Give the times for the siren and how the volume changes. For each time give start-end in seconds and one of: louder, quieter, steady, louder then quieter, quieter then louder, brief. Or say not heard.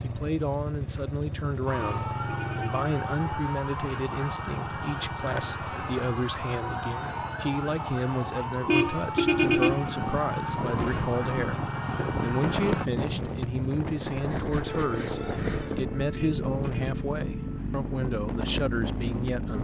1.6-12.9 steady
14.7-17.6 brief.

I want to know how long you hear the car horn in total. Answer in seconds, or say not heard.
3 s.